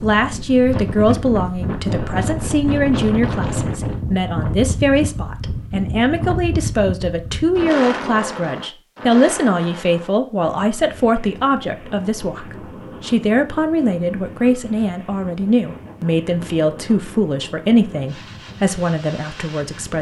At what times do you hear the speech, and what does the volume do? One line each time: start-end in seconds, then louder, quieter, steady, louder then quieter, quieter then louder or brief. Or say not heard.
0.0-19.9 steady.